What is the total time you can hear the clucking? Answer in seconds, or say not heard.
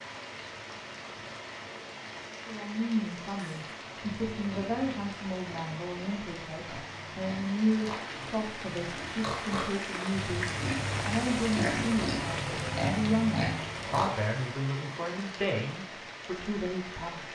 not heard.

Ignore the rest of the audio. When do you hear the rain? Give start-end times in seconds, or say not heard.
0.0-17.3.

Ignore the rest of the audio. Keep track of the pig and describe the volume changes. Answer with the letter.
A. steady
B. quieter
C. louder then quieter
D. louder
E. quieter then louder
D.